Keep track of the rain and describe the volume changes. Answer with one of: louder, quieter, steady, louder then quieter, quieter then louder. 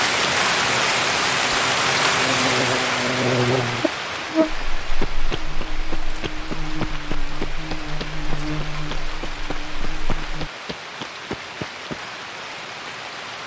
quieter.